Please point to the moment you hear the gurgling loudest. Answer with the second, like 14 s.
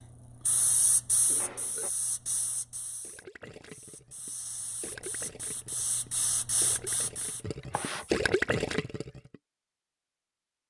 8 s.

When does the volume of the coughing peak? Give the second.
8 s.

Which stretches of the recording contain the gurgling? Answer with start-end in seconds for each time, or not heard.
3.0-9.3.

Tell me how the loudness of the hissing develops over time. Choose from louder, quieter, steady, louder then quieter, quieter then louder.
quieter then louder.